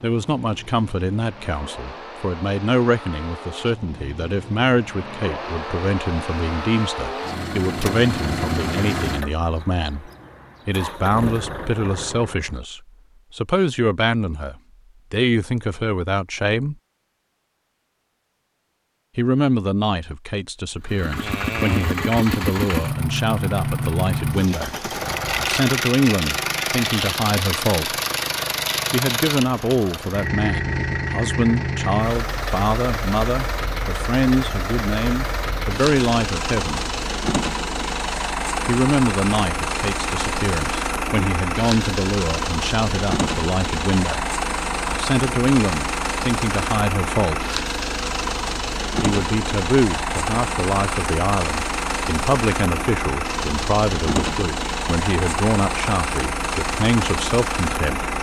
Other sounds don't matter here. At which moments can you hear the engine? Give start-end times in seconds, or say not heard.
0.0-12.6, 20.9-58.1.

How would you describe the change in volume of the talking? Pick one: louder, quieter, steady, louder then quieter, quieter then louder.
steady.